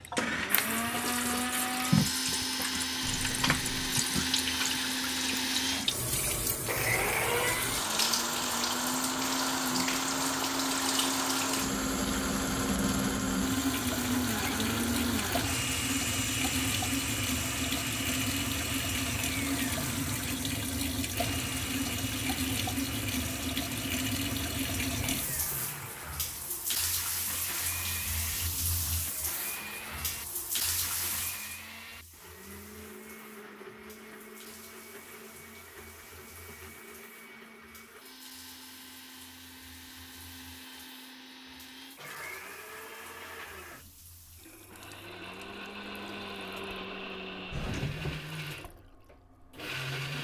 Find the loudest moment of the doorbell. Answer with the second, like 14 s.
48 s.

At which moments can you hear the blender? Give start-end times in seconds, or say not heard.
0.0-50.1.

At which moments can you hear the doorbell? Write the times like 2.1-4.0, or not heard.
3.0-4.0, 25.0-25.7, 47.5-48.2.